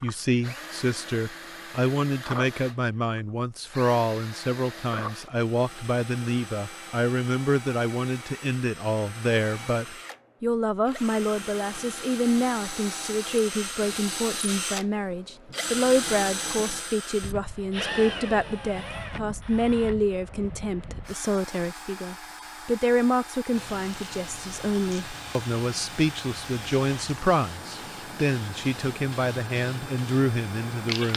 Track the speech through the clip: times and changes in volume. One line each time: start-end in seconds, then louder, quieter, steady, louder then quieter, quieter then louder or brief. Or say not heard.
0.0-31.1 steady.